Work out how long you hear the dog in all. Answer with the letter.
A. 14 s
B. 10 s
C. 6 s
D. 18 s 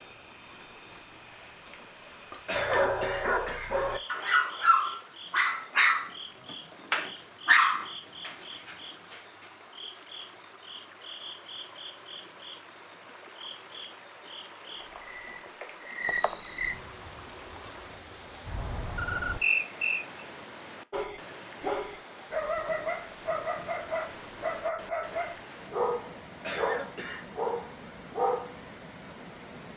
A.